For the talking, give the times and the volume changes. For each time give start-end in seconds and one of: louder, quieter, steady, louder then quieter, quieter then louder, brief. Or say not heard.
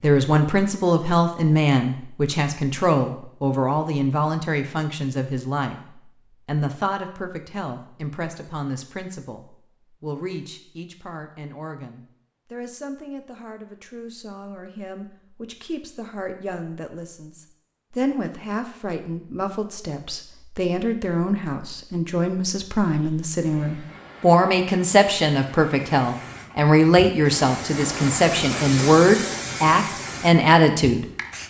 0.0-31.4 quieter then louder.